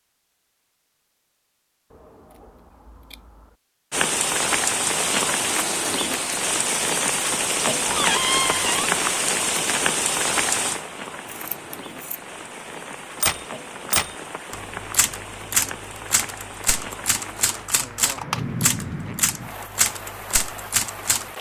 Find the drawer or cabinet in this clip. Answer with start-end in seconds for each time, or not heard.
7.8-8.8.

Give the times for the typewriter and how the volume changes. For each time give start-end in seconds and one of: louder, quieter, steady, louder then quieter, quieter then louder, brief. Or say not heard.
13.2-21.2 steady.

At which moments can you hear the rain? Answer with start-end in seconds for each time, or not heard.
3.9-21.3.